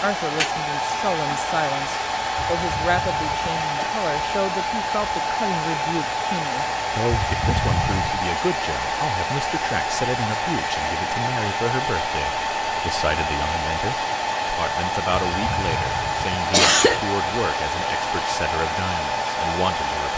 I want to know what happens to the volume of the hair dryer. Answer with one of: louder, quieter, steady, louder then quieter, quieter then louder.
steady.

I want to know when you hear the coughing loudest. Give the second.
17 s.